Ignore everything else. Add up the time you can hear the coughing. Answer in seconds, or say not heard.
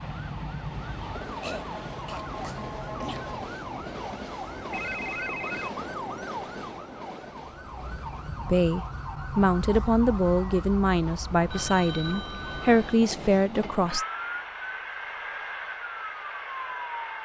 2 s.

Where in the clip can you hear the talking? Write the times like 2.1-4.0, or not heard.
8.4-14.1.